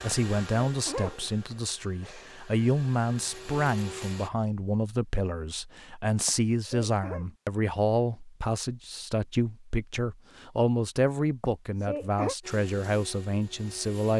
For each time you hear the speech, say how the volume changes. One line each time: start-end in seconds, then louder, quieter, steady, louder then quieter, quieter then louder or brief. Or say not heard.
0.0-14.1 steady.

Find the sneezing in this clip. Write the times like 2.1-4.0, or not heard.
0.1-2.5, 6.2-7.2, 11.4-12.3.